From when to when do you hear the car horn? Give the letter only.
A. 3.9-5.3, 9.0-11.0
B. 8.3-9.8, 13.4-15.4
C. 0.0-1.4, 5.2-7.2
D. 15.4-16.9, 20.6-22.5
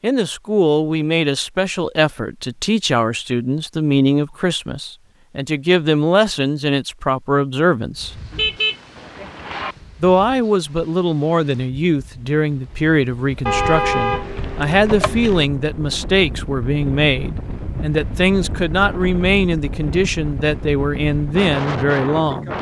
B.